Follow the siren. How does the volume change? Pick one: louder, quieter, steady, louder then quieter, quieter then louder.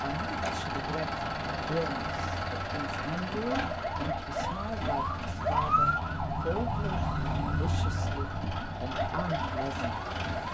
louder then quieter.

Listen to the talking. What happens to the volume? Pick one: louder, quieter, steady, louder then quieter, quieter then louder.
steady.